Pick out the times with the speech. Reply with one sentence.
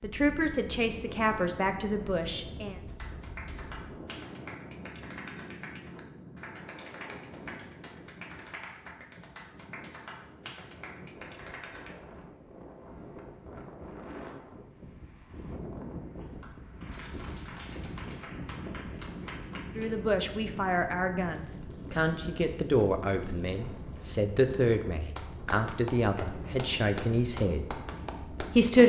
You can hear the speech from 0.0 to 2.8 s and from 19.8 to 28.8 s.